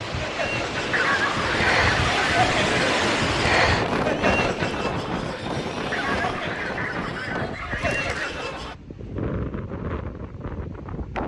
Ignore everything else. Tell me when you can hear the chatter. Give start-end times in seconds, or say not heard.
0.1-8.8.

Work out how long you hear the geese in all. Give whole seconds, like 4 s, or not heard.
4 s.